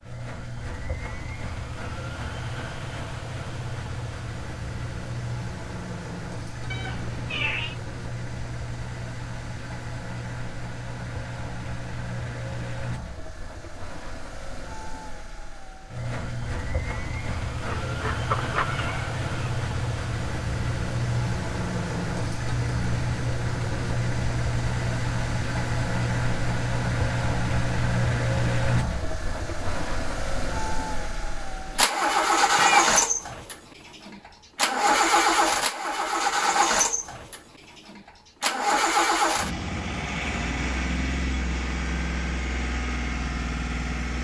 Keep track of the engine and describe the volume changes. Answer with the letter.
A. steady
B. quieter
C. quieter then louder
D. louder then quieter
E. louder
E.